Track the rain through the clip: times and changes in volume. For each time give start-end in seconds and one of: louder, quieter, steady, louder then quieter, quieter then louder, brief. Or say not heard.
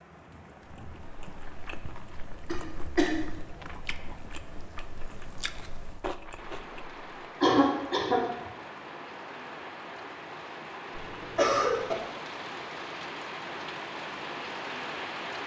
0.0-15.4 louder.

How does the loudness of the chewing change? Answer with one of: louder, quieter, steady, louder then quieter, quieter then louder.
louder.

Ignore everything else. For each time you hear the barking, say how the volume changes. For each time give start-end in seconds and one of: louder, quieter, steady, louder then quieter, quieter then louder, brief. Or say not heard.
not heard.